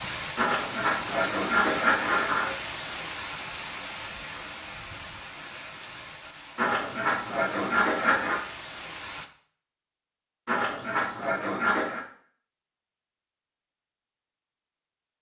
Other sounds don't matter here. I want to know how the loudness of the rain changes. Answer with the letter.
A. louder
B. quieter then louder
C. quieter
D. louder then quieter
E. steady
C.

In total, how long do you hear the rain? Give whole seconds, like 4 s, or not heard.
9 s.